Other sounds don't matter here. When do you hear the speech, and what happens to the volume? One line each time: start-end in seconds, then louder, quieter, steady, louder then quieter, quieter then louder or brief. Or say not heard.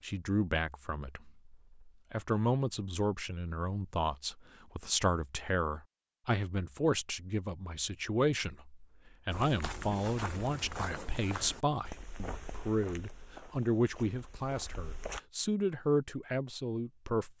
0.0-17.3 steady.